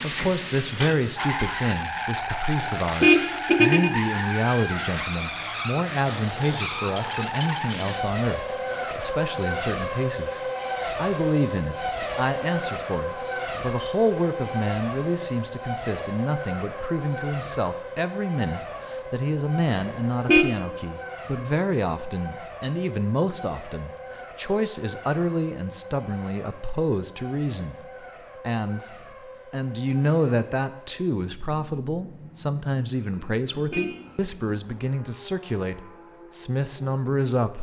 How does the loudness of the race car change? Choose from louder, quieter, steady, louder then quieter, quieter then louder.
quieter.